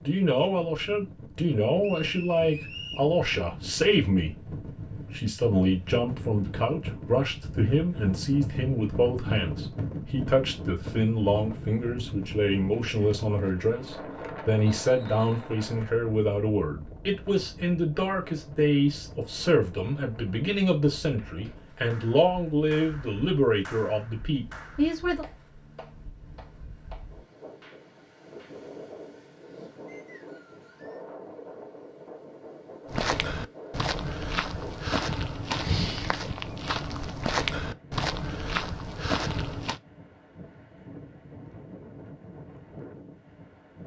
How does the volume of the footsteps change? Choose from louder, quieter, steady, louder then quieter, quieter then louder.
steady.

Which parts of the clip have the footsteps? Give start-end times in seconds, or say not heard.
32.9-39.8.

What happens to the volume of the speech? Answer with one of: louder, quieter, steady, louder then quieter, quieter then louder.
steady.